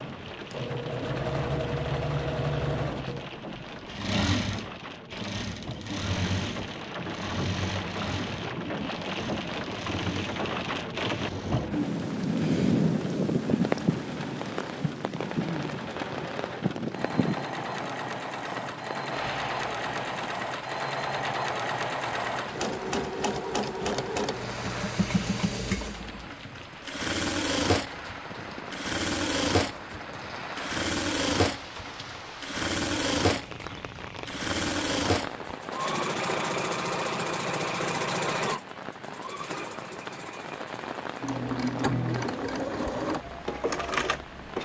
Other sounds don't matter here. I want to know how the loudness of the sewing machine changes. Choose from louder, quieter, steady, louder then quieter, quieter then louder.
quieter then louder.